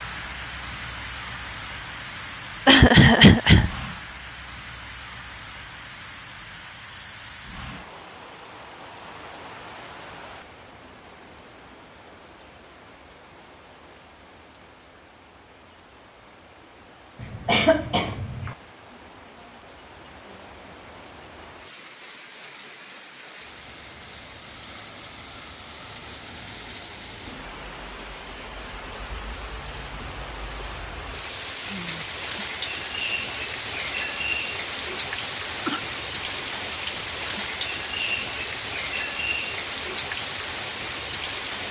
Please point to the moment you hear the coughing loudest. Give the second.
3 s.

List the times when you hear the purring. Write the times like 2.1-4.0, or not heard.
not heard.